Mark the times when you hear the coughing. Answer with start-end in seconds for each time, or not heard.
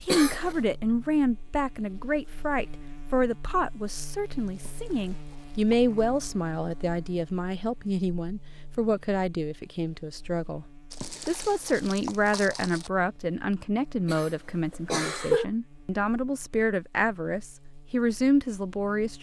0.1-0.6, 14.1-15.4.